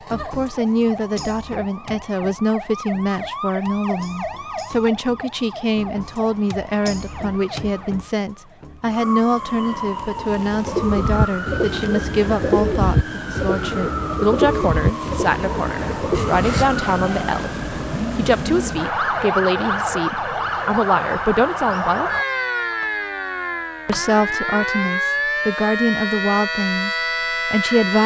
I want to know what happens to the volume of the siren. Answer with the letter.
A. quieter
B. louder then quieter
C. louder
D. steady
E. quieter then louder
C.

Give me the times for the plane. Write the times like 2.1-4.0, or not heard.
not heard.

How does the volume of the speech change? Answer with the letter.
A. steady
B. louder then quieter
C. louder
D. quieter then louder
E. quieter
A.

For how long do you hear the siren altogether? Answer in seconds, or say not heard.
28 s.